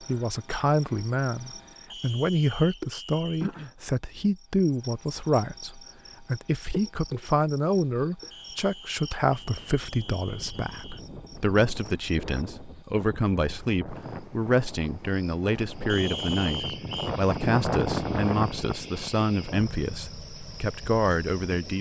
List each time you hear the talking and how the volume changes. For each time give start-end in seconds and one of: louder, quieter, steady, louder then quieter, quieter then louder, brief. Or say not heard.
0.1-21.7 steady.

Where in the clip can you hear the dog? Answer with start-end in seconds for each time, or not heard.
not heard.